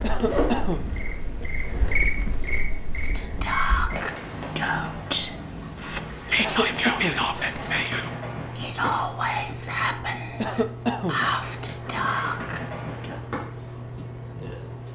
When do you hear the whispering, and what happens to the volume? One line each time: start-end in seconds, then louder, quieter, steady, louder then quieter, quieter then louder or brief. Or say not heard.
3.0-13.2 steady.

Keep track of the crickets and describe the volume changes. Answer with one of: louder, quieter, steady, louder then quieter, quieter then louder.
quieter.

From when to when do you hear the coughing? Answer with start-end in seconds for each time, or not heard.
0.0-1.0, 6.3-7.3, 10.4-11.3.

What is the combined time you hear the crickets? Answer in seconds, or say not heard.
15 s.